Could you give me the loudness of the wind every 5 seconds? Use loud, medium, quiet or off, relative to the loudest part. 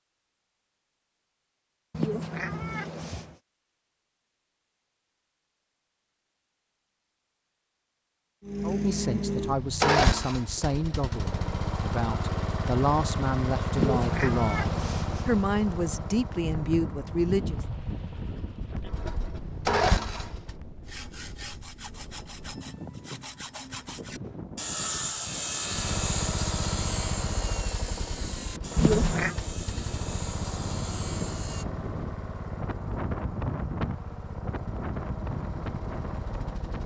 off, off, off, loud, medium, medium, loud, loud.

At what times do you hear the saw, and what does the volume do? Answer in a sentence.
The saw can be heard from 20.9 to 31.6 s, getting louder then quieter.